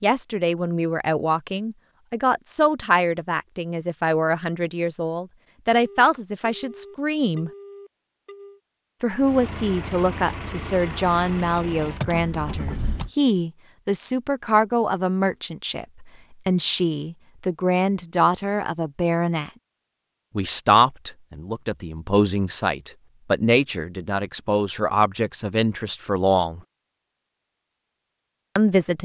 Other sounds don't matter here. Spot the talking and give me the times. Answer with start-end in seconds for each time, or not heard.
0.0-7.5, 9.0-19.5, 20.4-26.6, 28.6-29.0.